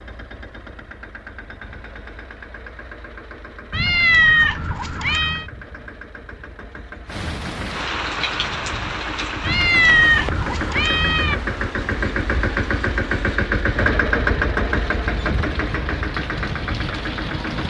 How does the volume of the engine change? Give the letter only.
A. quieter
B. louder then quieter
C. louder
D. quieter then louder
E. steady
C.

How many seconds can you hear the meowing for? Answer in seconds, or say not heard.
4 s.